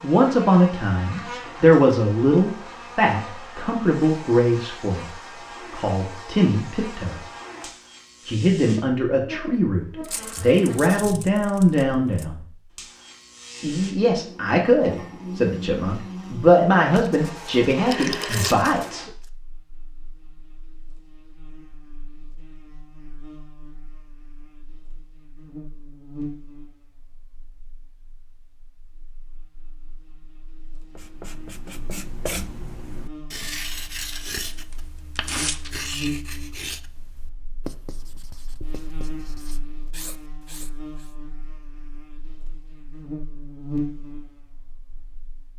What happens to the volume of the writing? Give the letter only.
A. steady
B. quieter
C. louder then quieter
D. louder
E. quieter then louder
B.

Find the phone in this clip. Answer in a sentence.
You can hear the phone from 17.9 to 19.1 s.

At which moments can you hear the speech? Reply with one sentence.
You can hear the speech from 0.0 to 7.2 s, from 8.2 to 12.4 s and from 13.6 to 19.1 s.